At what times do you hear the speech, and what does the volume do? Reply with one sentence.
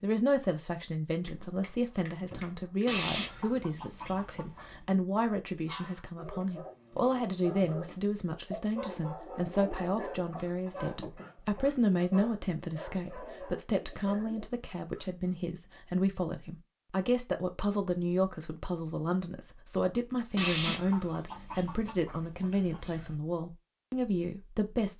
You can hear the speech from 0.0 to 24.9 s, at a steady volume.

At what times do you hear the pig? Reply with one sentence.
The pig can't be heard in this clip.